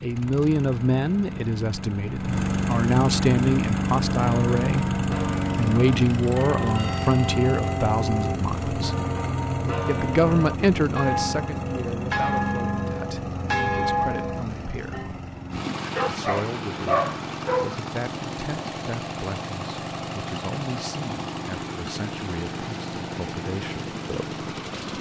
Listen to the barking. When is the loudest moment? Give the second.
17 s.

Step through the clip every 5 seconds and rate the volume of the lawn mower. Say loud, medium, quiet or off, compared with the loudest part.
loud, loud, medium, medium, medium.